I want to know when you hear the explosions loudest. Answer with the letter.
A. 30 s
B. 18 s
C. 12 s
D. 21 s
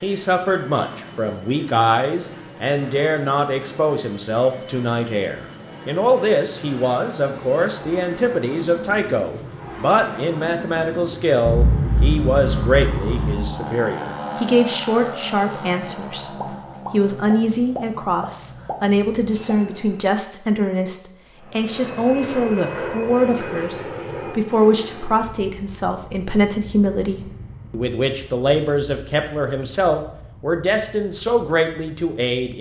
C.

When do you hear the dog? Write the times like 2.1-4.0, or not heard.
not heard.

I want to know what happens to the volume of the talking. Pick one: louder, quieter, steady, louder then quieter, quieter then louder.
steady.